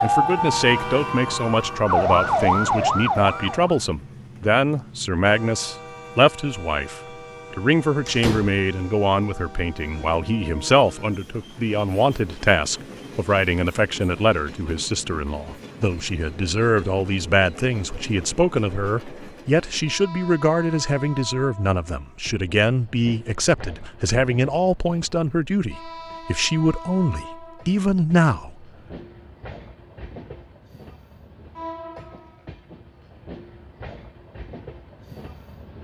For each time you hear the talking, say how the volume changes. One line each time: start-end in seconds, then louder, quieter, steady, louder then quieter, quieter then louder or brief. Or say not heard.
0.0-28.6 steady.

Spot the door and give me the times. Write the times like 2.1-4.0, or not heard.
8.1-8.6.